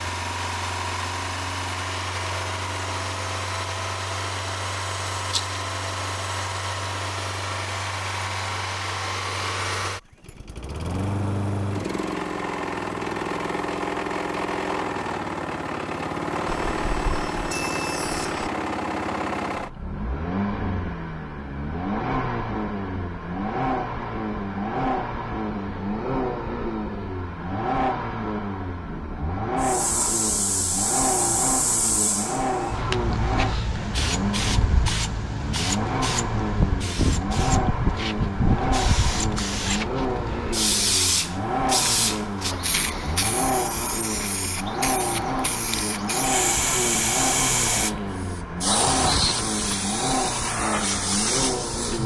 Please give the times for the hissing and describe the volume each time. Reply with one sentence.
The hissing can be heard from 29.6 to 52.0 s, at a steady volume.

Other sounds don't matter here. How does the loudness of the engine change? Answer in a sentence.
The loudness of the engine stays about the same.